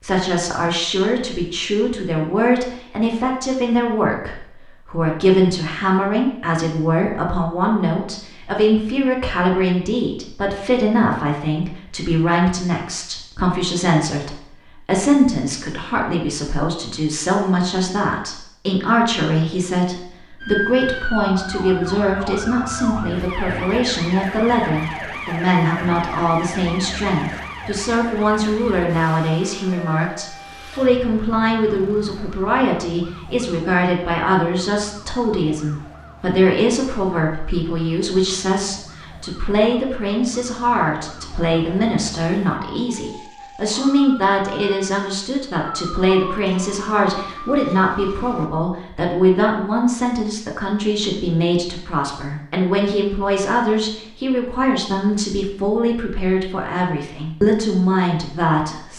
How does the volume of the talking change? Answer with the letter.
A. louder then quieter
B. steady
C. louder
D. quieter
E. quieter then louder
B.